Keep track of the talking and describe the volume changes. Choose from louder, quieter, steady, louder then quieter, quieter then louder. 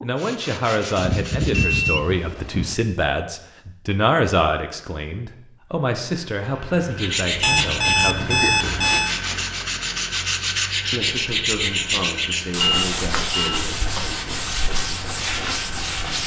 quieter.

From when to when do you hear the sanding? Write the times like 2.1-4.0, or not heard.
0.0-1.9, 7.0-16.2.